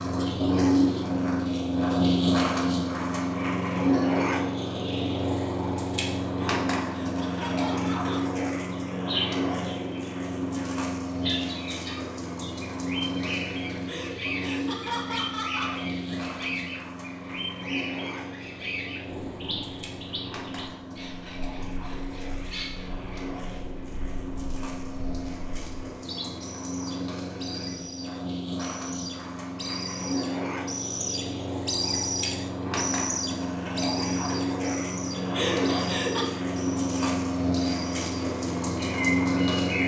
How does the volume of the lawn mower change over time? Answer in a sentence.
The volume of the lawn mower goes down, then up.